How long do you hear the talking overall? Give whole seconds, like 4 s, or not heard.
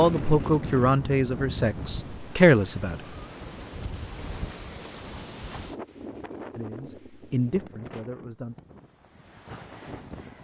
5 s.